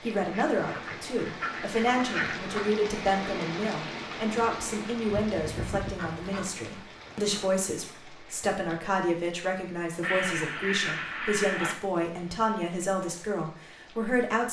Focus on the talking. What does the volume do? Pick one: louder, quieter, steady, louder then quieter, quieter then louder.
steady.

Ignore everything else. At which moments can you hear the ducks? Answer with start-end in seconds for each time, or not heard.
0.3-2.7, 6.0-7.7, 10.0-11.8.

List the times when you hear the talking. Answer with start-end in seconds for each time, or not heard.
0.0-14.4.